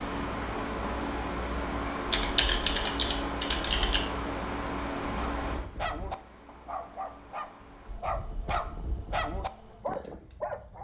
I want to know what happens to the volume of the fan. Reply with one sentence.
The volume of the fan goes down.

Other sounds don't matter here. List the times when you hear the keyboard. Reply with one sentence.
The keyboard can be heard from 2.1 to 4.0 s.